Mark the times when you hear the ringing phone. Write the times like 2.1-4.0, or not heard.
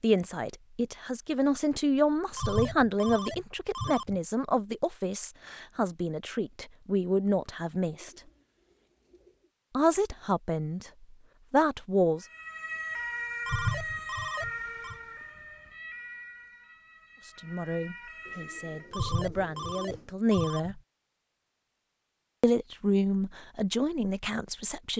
2.4-4.2, 13.4-14.9, 18.9-20.8.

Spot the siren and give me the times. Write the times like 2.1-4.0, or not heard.
12.2-18.9.